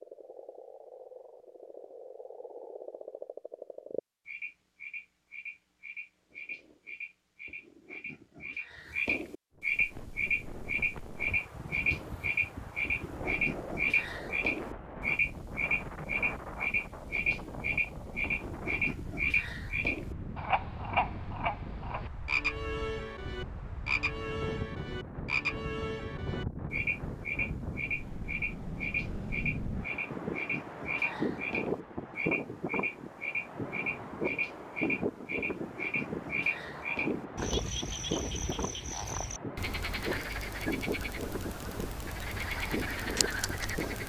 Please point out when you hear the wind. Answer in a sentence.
The wind can be heard from 9.6 to 44.0 s.